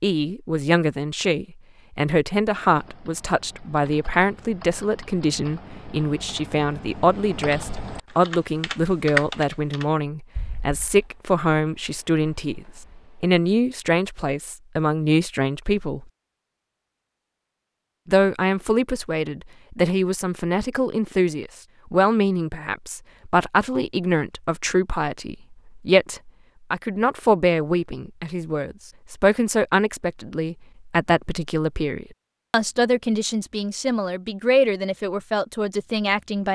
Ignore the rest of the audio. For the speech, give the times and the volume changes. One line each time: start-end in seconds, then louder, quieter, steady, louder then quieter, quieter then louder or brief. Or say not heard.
0.0-16.1 steady
18.1-36.4 steady.